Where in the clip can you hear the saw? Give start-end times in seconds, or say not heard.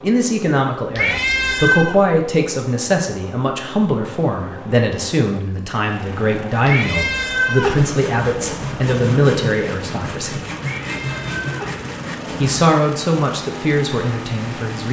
7.6-12.7.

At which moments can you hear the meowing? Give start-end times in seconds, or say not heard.
0.9-2.0, 6.7-7.8, 10.6-11.8.